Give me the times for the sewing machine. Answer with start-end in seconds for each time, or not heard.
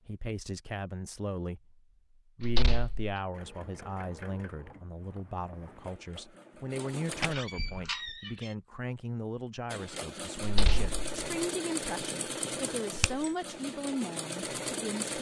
3.3-7.3, 9.7-15.1.